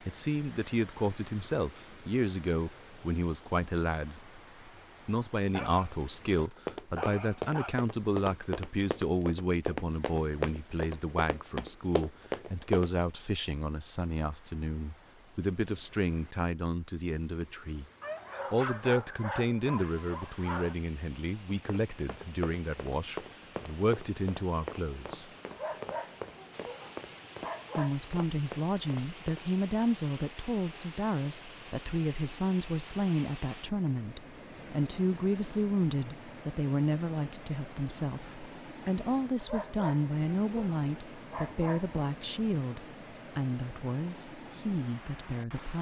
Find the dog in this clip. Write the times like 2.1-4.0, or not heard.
5.5-7.8, 18.0-20.8, 25.5-27.9, 39.4-42.0.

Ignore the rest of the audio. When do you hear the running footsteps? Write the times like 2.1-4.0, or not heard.
6.3-12.9, 21.5-29.4.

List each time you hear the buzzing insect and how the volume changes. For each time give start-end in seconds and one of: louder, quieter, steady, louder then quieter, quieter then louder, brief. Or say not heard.
not heard.